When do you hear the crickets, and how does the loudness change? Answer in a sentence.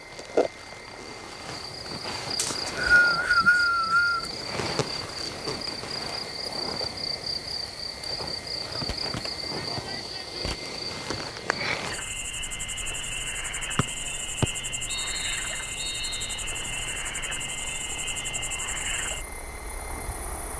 The crickets can be heard from 0.0 to 20.5 s, at a steady volume.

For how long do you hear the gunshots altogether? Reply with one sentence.
You can hear the gunshots for 2 seconds altogether.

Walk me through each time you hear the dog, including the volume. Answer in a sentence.
The dog can't be heard in this clip.